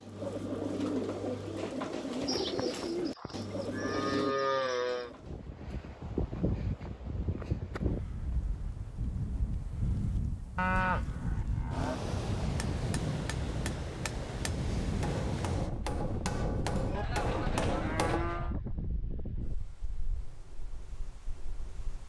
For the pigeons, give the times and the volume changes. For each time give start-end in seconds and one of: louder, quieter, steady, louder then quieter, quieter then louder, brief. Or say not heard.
0.0-5.5 quieter.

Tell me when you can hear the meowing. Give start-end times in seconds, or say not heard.
not heard.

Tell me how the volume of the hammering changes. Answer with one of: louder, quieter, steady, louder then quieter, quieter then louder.
louder.